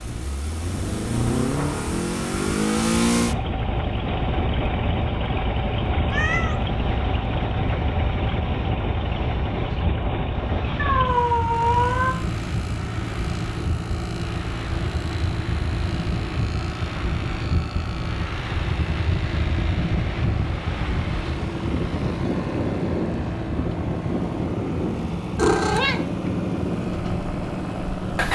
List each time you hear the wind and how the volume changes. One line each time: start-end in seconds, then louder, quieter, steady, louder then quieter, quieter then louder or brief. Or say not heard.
0.0-28.3 louder.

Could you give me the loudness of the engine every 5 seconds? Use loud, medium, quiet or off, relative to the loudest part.
loud, loud, medium, medium, medium, loud.